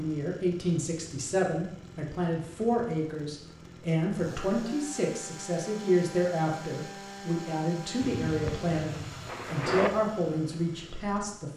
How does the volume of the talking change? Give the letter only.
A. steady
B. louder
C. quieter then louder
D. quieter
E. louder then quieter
A.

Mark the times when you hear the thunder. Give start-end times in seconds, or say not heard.
8.0-9.9.